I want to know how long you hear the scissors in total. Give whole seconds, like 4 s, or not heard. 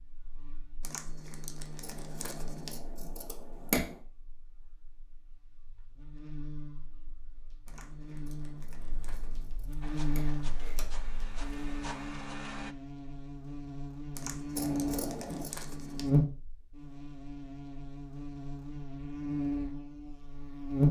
4 s.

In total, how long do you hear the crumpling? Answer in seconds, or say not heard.
6 s.